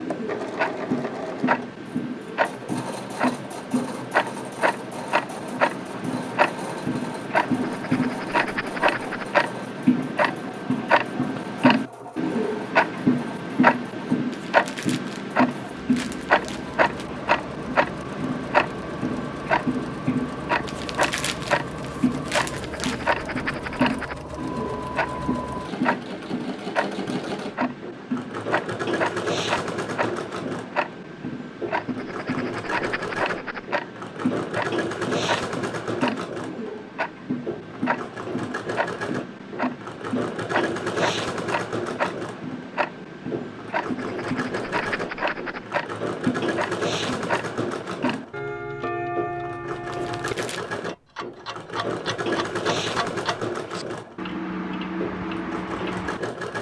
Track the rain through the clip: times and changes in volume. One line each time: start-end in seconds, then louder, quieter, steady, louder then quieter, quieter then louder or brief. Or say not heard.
not heard.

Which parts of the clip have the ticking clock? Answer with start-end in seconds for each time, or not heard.
0.0-56.2.